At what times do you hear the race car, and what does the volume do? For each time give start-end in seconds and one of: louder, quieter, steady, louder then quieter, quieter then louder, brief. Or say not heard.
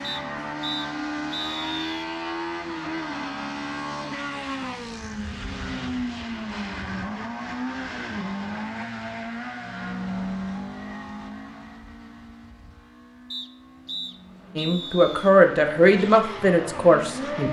0.0-17.4 quieter.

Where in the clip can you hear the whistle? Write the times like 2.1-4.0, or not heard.
0.0-1.8, 13.3-15.3.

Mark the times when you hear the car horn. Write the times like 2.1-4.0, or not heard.
not heard.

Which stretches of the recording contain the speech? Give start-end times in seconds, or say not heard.
14.6-17.4.